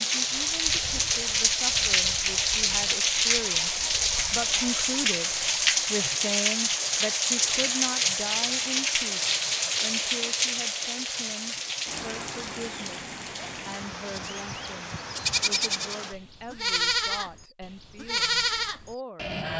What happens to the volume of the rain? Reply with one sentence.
The loudness of the rain goes down.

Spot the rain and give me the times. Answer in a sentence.
You can hear the rain from 0.0 to 16.1 s.